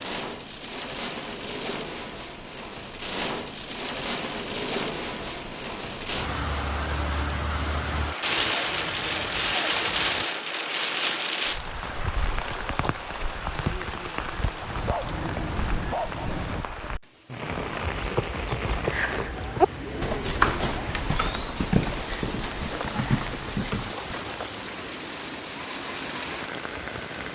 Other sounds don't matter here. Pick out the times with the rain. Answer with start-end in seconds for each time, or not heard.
0.0-27.3.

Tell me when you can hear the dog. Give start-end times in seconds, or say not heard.
8.2-10.2, 14.6-16.6.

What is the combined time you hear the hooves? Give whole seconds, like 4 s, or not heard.
7 s.